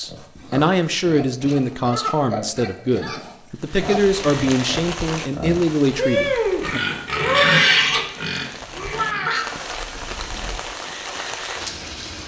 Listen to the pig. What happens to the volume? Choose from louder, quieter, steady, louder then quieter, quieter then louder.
louder.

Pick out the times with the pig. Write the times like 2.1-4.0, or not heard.
0.0-9.7.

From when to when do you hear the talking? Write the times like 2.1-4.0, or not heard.
0.0-6.8.